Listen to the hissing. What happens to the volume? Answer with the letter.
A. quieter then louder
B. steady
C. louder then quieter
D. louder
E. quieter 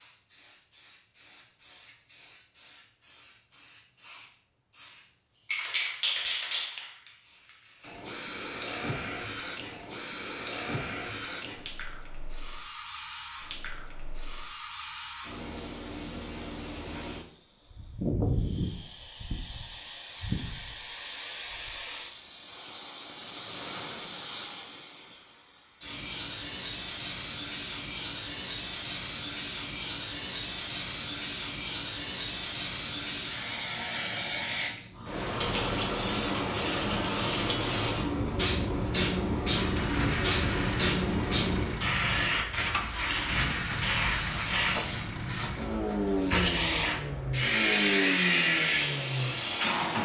D.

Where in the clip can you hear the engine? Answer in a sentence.
The engine can be heard from 39.5 to 50.0 s.